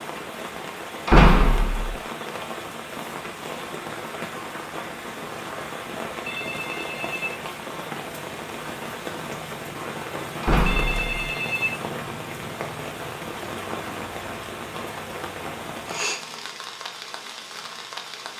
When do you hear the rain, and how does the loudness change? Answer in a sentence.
You can hear the rain from 0.0 to 18.3 s, at a steady volume.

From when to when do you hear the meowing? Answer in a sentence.
You can't hear the meowing here.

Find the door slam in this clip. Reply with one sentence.
The door slam can be heard from 1.1 to 1.9 s and from 10.4 to 11.1 s.